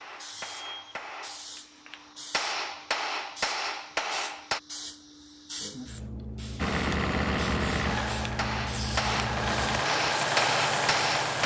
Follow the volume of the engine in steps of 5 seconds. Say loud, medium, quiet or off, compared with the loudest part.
off, loud, loud.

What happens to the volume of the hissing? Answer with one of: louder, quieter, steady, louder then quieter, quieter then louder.
louder.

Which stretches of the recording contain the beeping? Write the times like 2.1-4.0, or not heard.
0.3-1.0.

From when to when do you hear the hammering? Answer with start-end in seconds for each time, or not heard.
0.0-4.6, 8.3-11.4.